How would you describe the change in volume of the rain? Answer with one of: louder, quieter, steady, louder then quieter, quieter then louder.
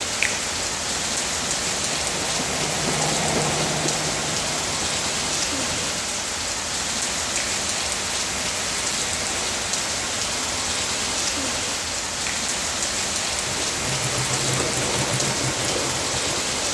steady.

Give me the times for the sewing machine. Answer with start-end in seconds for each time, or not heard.
0.1-6.0, 13.3-16.6.